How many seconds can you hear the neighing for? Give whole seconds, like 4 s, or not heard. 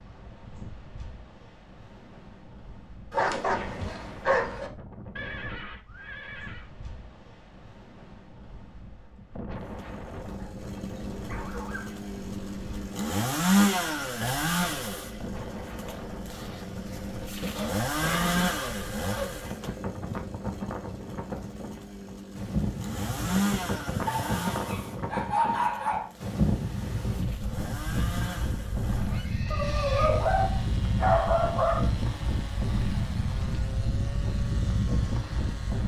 4 s.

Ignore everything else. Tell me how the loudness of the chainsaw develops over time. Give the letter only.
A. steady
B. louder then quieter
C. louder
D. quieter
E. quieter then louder
D.